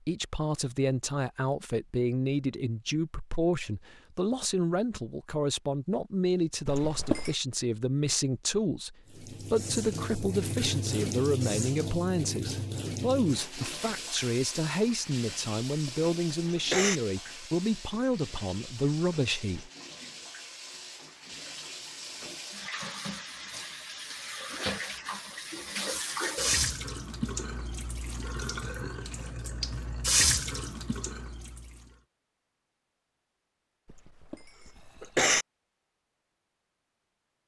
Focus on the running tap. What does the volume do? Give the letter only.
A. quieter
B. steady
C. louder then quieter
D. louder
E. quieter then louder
E.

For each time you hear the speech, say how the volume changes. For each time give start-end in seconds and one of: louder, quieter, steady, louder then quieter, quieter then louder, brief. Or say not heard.
0.1-19.7 steady.